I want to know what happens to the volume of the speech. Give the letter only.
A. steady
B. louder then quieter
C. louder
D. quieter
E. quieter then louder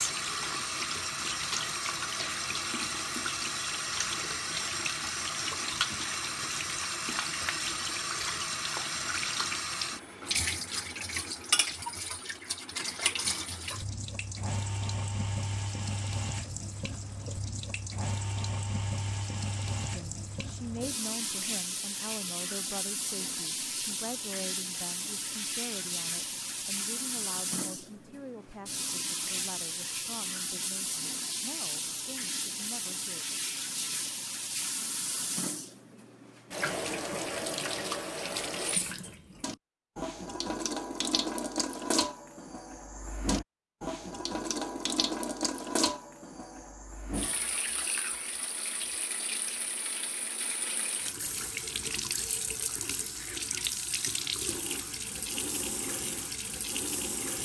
D.